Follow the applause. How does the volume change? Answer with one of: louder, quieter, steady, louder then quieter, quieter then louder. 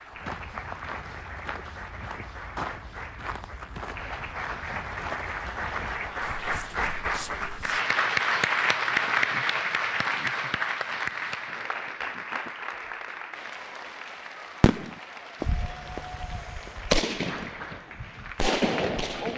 louder then quieter.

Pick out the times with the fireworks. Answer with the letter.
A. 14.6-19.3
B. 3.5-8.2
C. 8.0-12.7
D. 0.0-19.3
A.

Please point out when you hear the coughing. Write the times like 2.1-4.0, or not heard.
not heard.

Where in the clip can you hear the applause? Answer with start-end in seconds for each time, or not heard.
0.0-19.3.